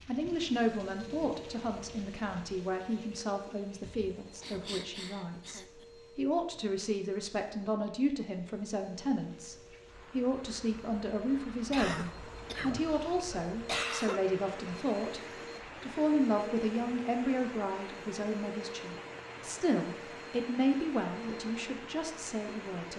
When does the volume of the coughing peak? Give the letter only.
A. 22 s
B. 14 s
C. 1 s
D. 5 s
B.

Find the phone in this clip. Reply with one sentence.
You can't hear the phone here.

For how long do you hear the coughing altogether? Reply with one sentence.
The coughing can be heard for 4 seconds in total.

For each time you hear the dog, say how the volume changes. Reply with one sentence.
You can't hear the dog here.